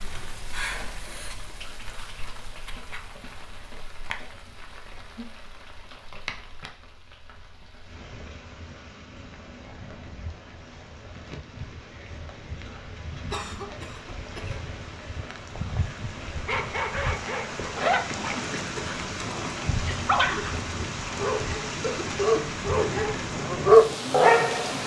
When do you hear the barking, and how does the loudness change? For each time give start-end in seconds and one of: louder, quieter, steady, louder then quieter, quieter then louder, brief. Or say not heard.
16.4-24.8 quieter then louder.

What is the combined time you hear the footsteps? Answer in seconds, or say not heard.
not heard.